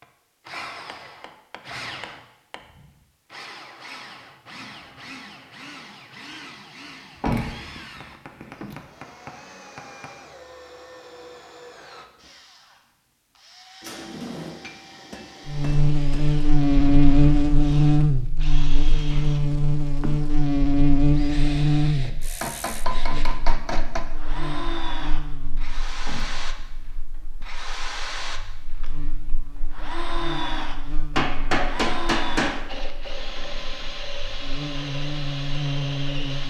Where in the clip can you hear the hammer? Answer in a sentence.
You can hear the hammer from 0.8 to 2.6 s, from 8.0 to 10.2 s, from 14.6 to 16.4 s, from 22.4 to 24.1 s and from 31.1 to 32.7 s.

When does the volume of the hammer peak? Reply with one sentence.
The volume of the hammer peaks at 32 seconds.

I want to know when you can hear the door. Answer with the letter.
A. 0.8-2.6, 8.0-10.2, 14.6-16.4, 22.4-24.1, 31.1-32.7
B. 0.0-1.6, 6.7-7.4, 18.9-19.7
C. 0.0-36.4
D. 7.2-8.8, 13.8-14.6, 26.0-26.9
D.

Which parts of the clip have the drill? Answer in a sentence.
You can hear the drill from 0.0 to 36.4 s.